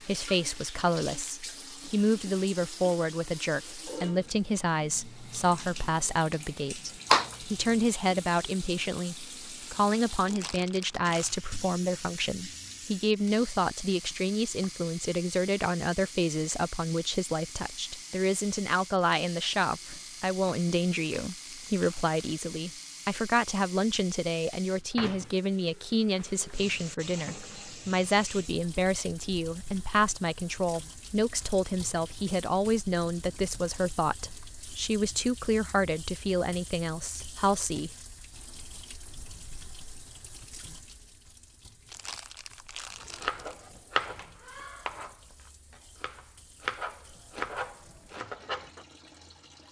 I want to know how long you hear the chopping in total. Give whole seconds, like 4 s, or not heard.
6 s.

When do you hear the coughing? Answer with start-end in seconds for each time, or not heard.
7.1-7.7.